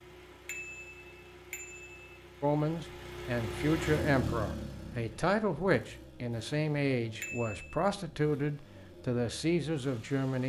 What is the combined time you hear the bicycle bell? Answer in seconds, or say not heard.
2 s.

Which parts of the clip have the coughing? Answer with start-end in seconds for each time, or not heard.
not heard.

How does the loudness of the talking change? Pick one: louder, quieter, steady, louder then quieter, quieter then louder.
steady.